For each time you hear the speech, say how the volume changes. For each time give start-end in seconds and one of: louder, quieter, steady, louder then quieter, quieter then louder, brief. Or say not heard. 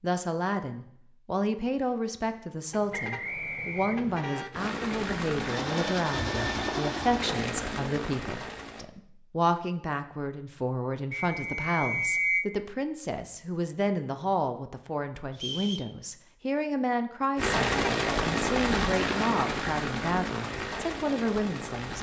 0.0-21.9 steady.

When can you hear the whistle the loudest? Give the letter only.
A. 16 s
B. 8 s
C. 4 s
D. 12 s
D.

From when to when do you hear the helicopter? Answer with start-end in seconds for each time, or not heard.
4.5-8.8, 17.4-21.9.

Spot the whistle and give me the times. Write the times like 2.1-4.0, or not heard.
2.9-4.5, 11.1-12.4, 15.3-15.9.